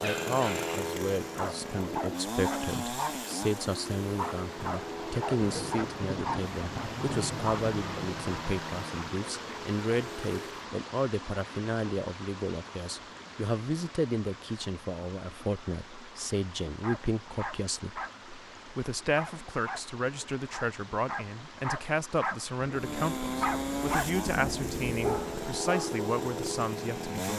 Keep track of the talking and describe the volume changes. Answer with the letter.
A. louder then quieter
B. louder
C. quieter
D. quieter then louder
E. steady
E.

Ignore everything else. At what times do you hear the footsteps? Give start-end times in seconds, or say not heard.
not heard.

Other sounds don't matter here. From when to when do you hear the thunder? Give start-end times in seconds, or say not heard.
5.4-8.4, 22.6-25.4.